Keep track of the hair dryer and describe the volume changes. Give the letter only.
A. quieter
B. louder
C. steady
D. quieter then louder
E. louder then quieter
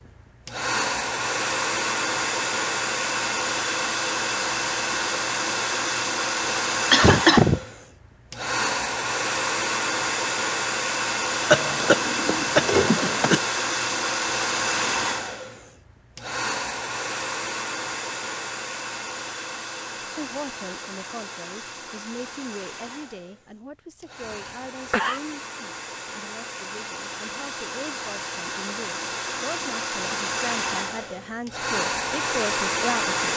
D.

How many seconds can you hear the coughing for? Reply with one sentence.
You can hear the coughing for 4 seconds altogether.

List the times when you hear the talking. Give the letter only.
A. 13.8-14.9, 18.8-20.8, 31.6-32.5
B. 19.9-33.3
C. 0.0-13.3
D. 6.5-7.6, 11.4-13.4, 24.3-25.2
B.